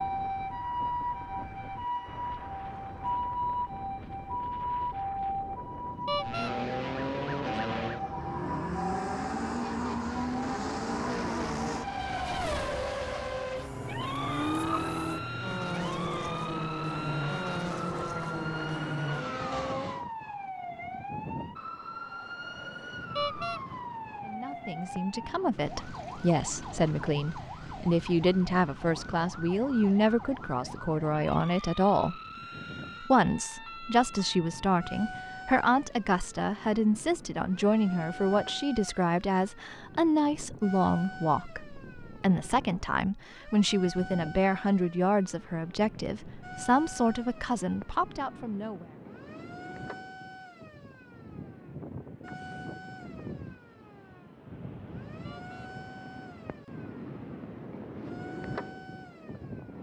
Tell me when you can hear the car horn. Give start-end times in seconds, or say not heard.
6.0-6.5, 23.1-23.6, 55.2-55.7.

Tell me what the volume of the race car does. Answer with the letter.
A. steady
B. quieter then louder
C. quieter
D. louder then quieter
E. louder
A.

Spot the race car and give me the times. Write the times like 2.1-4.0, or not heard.
6.2-20.1.